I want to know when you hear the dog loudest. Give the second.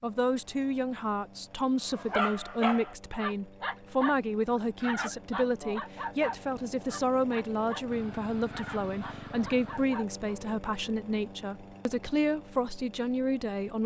2 s.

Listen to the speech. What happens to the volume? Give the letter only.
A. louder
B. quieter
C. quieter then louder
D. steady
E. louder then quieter
D.